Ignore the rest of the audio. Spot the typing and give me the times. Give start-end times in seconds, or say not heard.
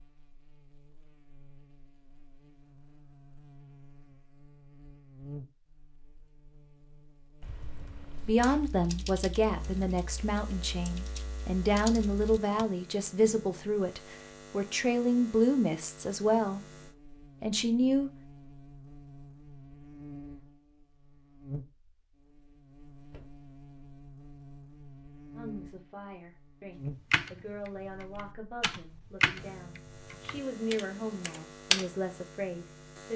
7.4-12.7, 26.9-31.9.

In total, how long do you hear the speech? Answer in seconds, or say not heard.
17 s.